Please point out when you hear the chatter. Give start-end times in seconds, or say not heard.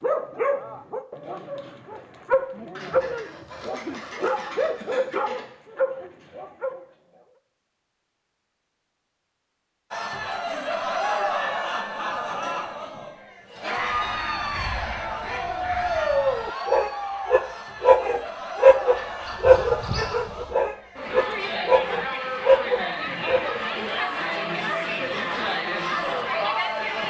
9.9-27.0.